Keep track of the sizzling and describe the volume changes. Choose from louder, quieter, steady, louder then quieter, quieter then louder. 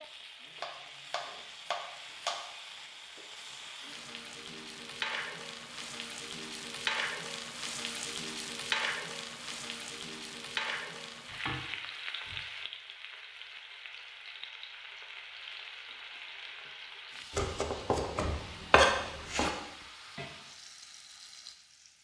louder then quieter.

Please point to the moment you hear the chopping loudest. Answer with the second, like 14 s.
19 s.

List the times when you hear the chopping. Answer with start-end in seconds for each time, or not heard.
0.6-2.5, 17.4-19.5.